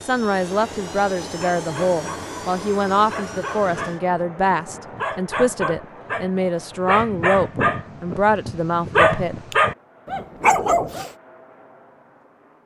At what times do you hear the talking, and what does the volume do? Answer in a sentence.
The talking can be heard from 0.0 to 9.4 s, at a steady volume.